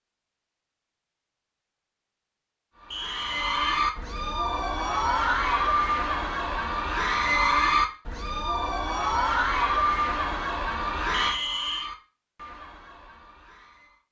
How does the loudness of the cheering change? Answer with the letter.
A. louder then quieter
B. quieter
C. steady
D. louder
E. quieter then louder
B.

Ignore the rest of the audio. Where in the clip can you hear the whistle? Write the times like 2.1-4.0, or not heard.
2.9-3.6, 11.1-11.9.